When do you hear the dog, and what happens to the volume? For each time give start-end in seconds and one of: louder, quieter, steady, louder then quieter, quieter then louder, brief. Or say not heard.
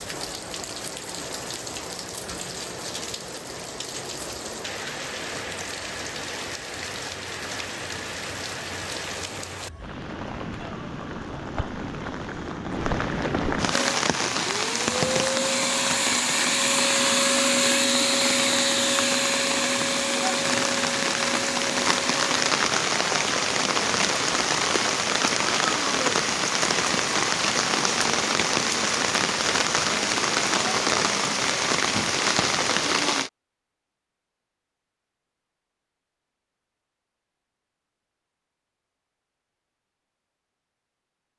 not heard.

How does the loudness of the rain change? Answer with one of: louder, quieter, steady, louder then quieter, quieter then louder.
louder.